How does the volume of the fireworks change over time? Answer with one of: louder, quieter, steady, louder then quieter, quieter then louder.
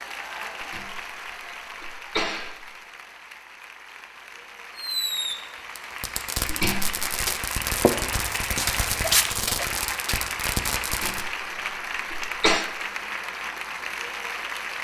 steady.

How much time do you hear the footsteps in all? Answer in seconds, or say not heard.
2 s.